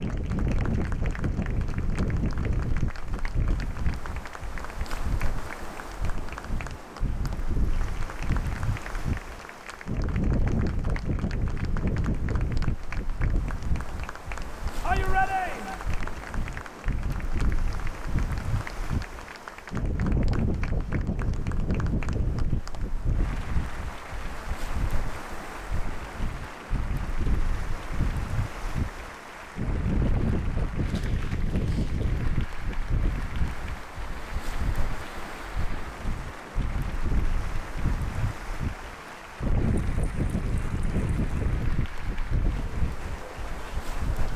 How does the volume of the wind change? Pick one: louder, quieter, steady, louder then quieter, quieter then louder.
steady.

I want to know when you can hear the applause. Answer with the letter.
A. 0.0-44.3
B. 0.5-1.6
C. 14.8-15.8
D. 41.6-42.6
A.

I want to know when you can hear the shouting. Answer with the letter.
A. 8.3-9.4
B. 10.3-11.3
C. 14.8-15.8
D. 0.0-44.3
C.